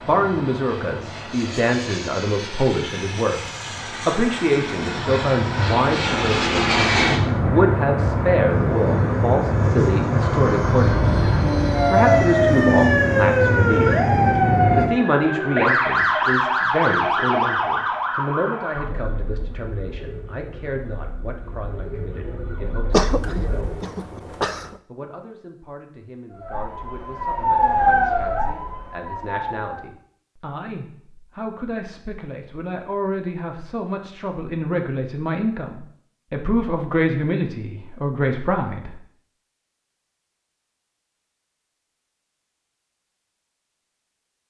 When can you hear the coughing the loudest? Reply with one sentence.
The volume of the coughing peaks at 23 seconds.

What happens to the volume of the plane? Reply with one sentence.
The loudness of the plane goes up.